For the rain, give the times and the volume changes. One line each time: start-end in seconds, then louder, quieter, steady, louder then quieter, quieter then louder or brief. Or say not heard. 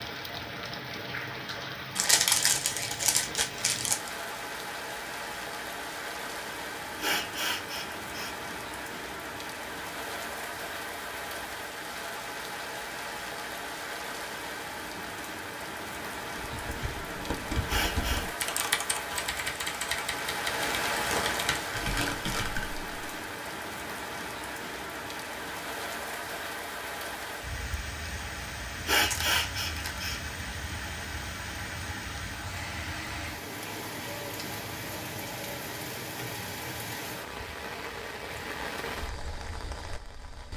0.0-40.5 steady.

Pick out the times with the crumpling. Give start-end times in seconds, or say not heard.
1.9-4.1, 20.5-22.4, 29.1-30.1.